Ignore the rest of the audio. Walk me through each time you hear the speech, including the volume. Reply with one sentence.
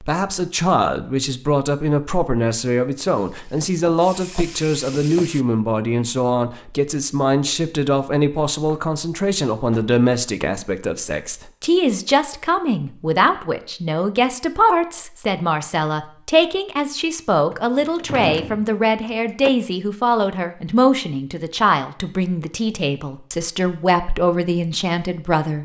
You can hear the speech from 0.0 to 25.6 s, at a steady volume.